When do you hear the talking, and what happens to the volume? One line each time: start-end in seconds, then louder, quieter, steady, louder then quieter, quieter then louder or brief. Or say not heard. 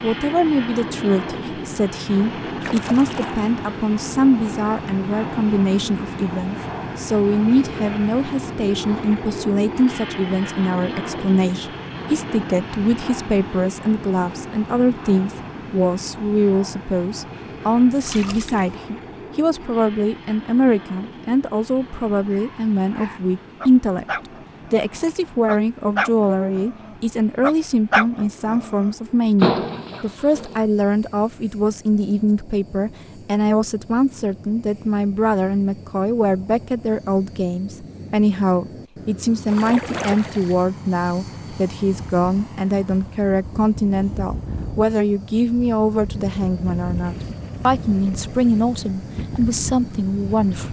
0.0-24.1 steady
24.7-50.6 steady.